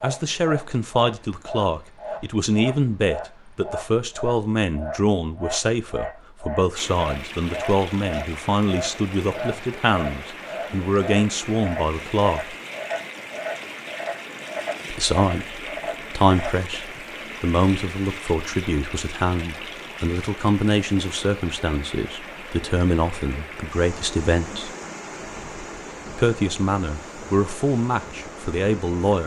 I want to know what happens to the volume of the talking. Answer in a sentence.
The volume of the talking stays about the same.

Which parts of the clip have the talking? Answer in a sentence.
The talking can be heard from 0.0 to 12.6 s, from 14.9 to 24.7 s and from 26.1 to 29.2 s.